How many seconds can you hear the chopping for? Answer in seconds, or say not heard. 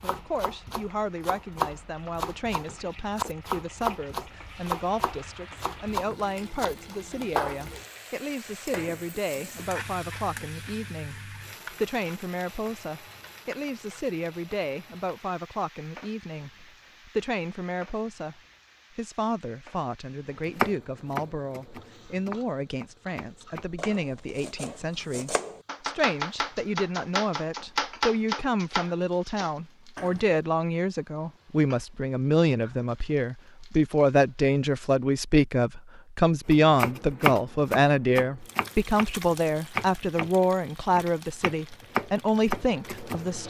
24 s.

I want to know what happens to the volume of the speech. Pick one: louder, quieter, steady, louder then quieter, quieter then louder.
louder.